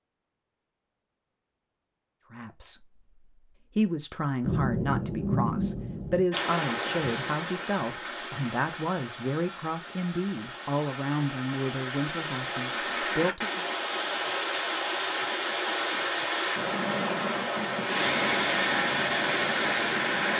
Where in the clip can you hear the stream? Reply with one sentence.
The stream can be heard from 6.3 to 20.3 s.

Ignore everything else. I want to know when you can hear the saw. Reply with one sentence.
You can't hear the saw here.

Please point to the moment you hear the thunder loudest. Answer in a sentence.
The volume of the thunder peaks at 5 seconds.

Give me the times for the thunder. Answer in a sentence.
The thunder can be heard from 4.4 to 6.2 s.